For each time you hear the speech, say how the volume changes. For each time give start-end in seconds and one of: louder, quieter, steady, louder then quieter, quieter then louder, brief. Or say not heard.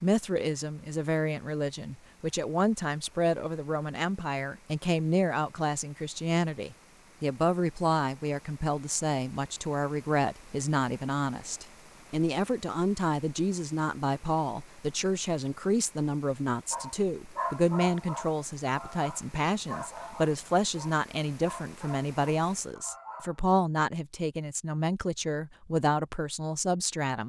0.0-27.2 steady.